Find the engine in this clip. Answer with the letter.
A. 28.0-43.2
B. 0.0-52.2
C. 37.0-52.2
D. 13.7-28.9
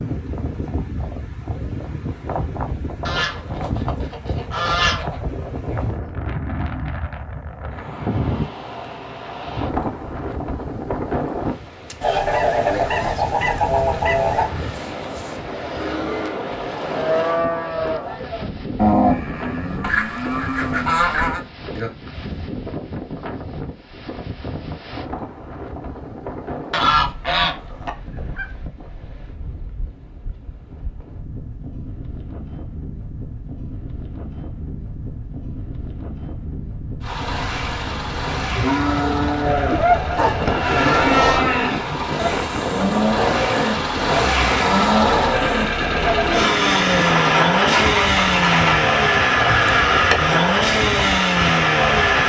C.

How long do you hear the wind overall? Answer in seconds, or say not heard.
52 s.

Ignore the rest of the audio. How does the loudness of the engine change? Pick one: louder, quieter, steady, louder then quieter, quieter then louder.
louder.